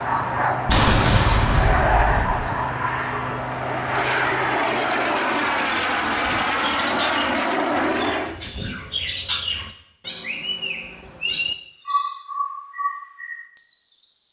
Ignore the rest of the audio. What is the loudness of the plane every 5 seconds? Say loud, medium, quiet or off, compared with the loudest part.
loud, loud, off.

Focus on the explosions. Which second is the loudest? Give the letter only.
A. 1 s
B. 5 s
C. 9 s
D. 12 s
A.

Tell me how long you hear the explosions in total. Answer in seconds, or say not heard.
2 s.